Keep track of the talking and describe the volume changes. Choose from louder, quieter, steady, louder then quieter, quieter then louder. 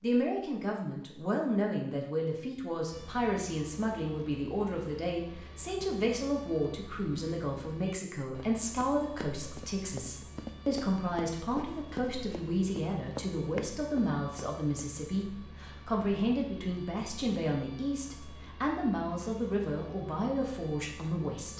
steady.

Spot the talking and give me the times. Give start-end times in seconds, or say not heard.
0.0-21.5.